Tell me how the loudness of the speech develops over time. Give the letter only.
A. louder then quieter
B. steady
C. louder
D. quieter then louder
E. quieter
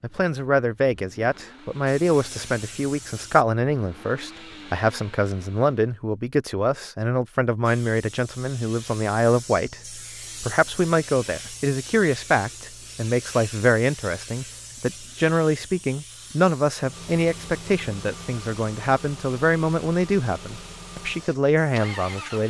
B.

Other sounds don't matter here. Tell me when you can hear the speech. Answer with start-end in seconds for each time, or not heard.
0.0-22.4.